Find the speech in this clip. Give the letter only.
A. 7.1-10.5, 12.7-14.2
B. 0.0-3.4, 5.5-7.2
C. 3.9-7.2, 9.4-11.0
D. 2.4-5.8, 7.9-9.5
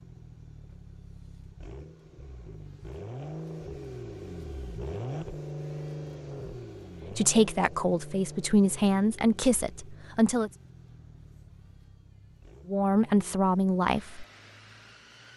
A.